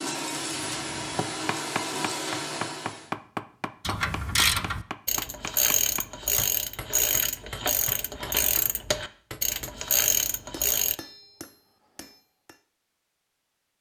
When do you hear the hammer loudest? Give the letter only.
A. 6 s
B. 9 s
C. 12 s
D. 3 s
D.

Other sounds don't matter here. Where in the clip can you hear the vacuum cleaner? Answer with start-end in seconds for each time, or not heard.
0.0-3.1.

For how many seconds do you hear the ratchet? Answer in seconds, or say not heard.
7 s.